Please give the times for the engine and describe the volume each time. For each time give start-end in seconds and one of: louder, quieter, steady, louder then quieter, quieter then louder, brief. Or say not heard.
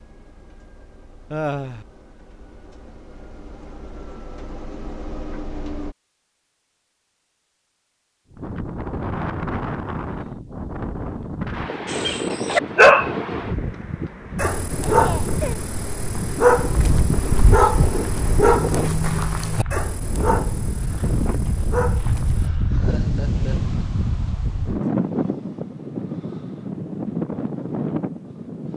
0.0-6.0 louder.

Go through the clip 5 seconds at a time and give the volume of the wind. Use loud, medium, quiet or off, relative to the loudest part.
off, loud, loud, loud, loud, loud.